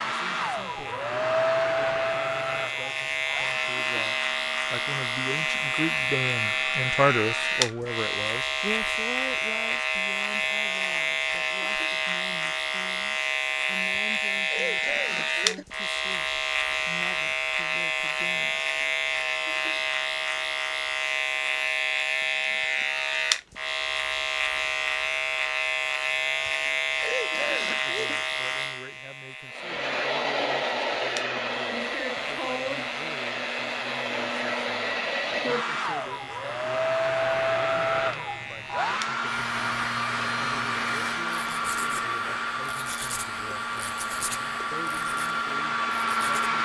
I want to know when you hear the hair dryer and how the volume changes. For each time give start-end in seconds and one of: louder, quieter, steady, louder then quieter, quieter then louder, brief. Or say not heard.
0.0-8.0 quieter
29.5-46.6 steady.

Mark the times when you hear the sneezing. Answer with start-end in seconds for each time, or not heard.
13.9-15.7, 26.4-28.2.